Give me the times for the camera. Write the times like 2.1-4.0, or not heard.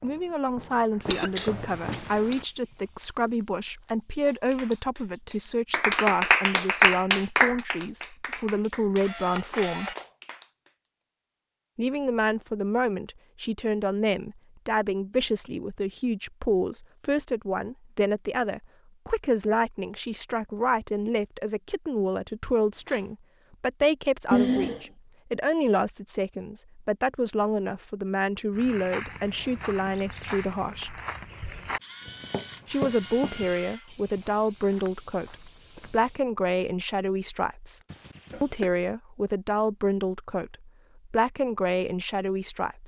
9.0-10.1, 22.7-23.1, 31.8-33.9.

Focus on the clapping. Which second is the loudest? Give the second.
7 s.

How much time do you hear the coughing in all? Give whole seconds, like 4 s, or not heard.
3 s.